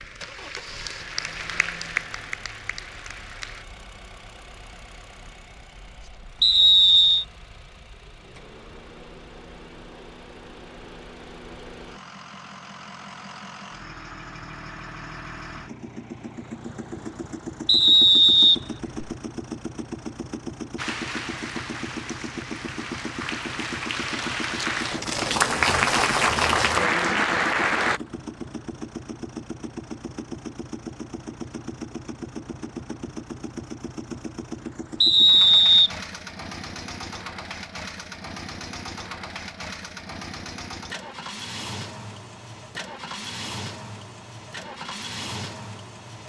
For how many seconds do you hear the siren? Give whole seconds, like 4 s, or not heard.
not heard.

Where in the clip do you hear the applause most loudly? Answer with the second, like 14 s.
26 s.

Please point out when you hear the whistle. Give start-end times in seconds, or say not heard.
6.4-7.2, 17.6-19.1, 35.0-35.9.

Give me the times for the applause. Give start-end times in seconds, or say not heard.
0.0-3.6, 20.8-28.0.